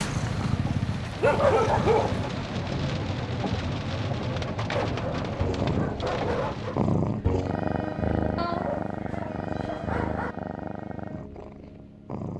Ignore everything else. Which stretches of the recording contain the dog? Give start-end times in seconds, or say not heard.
0.3-2.3, 4.8-6.8, 8.3-10.3.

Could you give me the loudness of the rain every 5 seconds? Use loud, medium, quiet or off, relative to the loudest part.
loud, loud, off.